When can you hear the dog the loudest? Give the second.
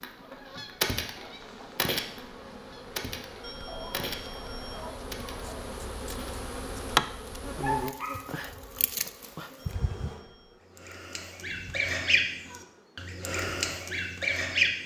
8 s.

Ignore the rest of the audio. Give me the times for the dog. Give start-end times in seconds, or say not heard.
3.6-5.7, 7.6-8.2.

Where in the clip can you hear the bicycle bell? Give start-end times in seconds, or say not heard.
3.4-4.9, 9.6-10.7.